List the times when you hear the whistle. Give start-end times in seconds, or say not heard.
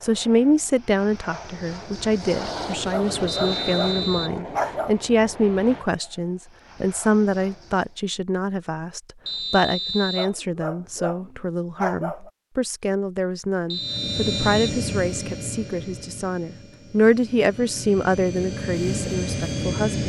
3.2-4.4, 9.2-10.3, 13.7-14.8.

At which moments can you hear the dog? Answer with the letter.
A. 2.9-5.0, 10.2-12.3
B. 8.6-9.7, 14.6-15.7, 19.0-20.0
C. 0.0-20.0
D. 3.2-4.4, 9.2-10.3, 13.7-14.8
A.